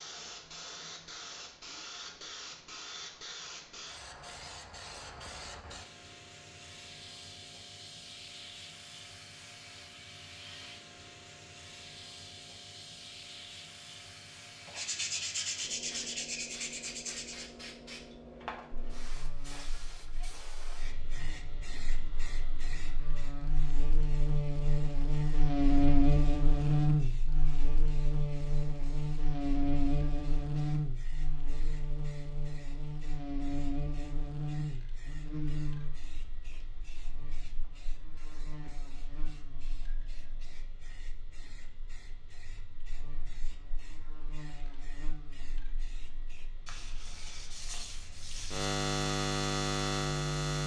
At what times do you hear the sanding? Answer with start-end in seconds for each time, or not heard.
14.7-17.4, 46.6-48.6.